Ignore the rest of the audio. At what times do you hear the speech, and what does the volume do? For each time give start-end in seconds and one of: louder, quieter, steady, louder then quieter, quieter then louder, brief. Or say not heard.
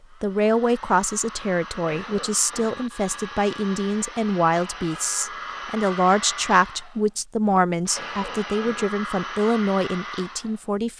0.2-10.9 steady.